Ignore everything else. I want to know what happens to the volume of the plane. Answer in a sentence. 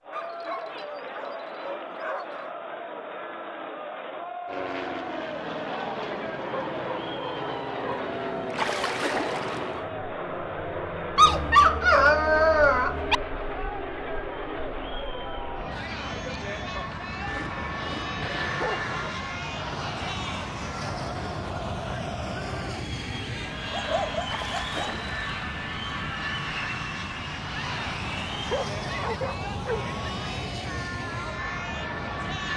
The loudness of the plane stays about the same.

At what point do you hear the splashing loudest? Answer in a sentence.
The volume of the splashing peaks at 9 seconds.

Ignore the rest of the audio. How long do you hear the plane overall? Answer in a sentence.
You can hear the plane for 28 seconds altogether.